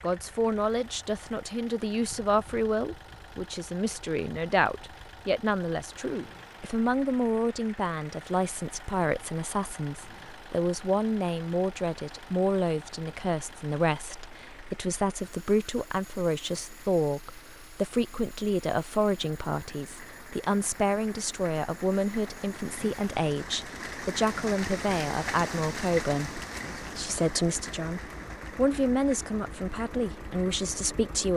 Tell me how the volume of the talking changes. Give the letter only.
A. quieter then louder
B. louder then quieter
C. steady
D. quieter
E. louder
C.